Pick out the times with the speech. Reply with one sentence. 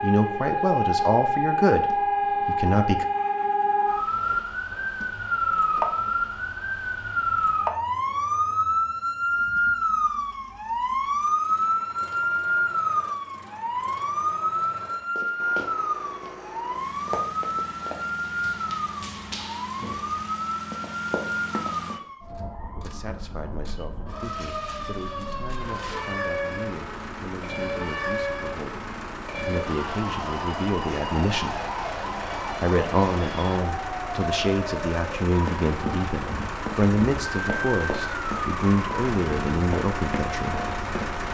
You can hear the speech from 0.0 to 3.0 s, from 22.8 to 31.6 s and from 32.6 to 40.6 s.